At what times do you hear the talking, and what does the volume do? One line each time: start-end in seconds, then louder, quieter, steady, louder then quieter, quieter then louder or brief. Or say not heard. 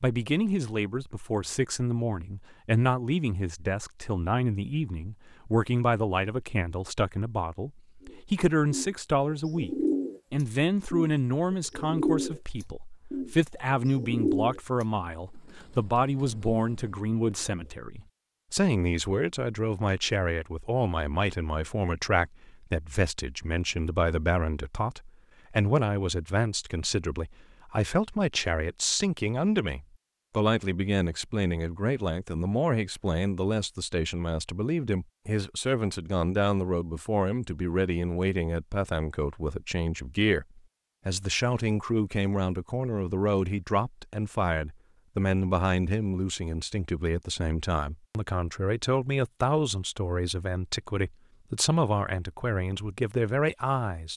0.0-54.1 steady.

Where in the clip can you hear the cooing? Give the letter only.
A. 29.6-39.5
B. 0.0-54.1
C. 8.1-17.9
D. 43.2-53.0
C.